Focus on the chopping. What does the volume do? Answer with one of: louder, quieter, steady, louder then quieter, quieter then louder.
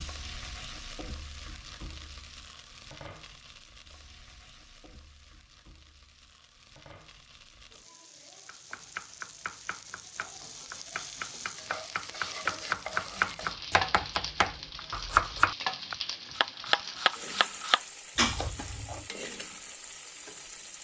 louder.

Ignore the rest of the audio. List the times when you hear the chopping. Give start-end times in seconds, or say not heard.
8.4-19.1.